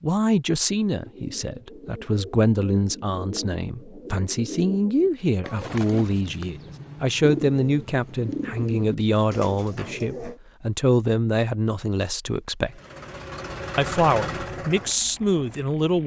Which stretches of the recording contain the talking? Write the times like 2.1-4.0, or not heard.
0.0-12.8, 13.8-16.0.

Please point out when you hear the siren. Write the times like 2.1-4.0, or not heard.
not heard.